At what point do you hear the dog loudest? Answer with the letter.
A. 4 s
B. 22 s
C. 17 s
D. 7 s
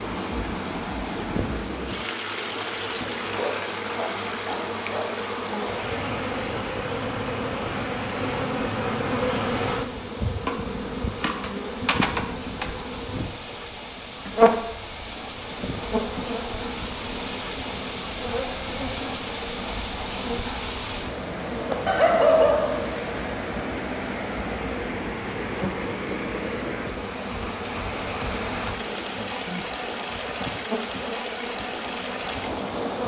B.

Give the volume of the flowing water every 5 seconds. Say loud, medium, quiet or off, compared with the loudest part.
loud, medium, medium, loud, loud, loud, loud.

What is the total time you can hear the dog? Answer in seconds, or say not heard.
5 s.